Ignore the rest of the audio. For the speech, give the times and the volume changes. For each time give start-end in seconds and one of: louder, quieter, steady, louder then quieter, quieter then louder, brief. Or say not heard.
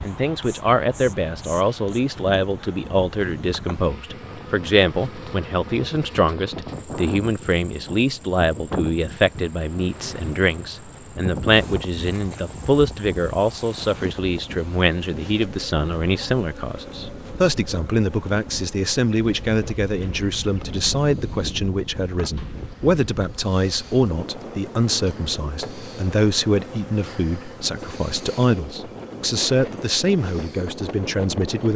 0.0-31.7 steady.